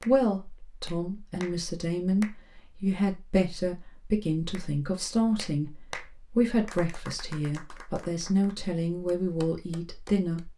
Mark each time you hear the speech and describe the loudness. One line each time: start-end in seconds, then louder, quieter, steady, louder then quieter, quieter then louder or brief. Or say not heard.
0.0-10.5 steady.